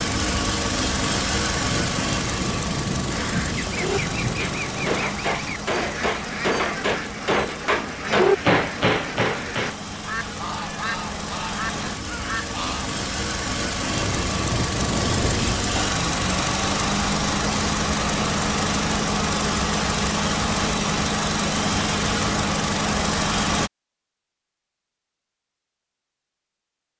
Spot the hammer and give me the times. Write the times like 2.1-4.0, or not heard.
3.8-9.8.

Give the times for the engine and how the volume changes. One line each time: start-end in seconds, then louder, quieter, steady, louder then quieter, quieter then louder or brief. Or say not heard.
0.0-23.7 quieter then louder.